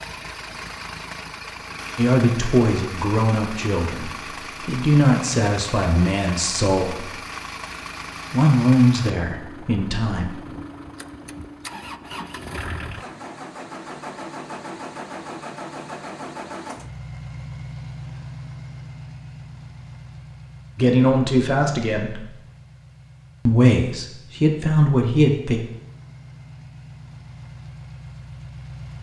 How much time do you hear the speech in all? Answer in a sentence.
You can hear the speech for 11 seconds altogether.